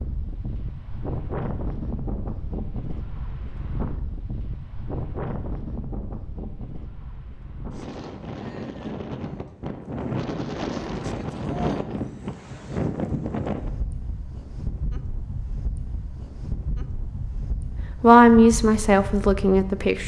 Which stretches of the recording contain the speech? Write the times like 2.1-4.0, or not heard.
18.0-20.0.